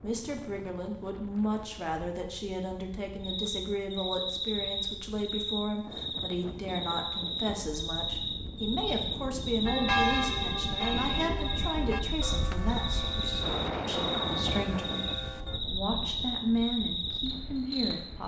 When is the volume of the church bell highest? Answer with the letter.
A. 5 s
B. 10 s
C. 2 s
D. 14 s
B.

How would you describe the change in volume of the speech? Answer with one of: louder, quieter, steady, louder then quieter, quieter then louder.
steady.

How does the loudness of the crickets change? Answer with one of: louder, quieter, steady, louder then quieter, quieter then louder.
steady.